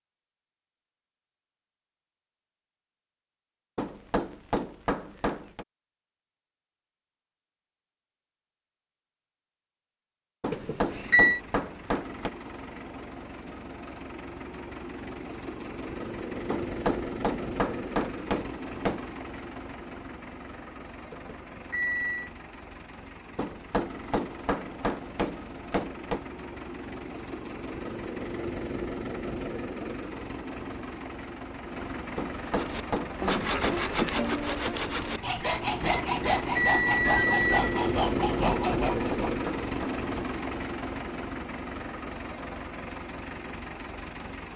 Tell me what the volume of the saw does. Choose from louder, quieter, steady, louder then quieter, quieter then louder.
steady.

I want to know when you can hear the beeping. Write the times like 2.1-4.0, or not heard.
10.5-11.4, 21.1-22.3, 36.0-37.8.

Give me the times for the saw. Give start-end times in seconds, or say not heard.
32.5-39.5.